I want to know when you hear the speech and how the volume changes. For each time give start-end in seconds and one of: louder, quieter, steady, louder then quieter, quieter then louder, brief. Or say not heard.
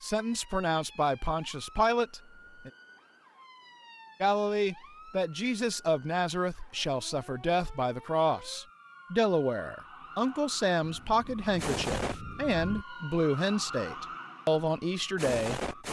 0.0-2.7 brief
4.2-15.7 steady.